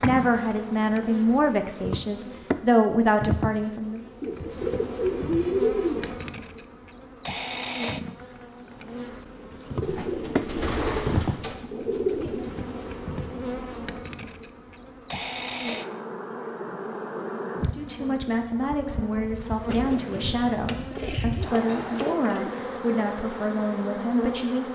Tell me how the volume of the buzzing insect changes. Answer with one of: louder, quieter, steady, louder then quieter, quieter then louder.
steady.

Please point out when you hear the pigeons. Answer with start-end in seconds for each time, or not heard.
4.2-6.1, 9.8-12.6, 19.7-22.6.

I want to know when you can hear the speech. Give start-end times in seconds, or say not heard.
0.0-4.0, 17.6-24.7.